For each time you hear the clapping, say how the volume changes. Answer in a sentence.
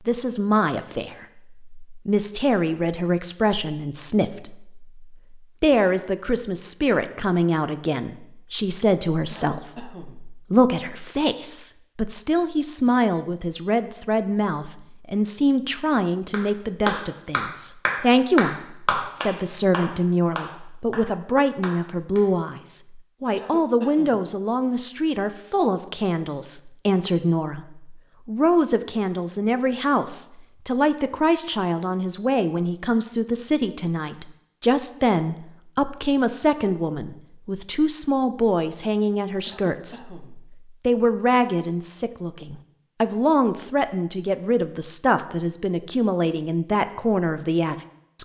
The clapping can be heard from 16.3 to 22.2 s, getting quieter.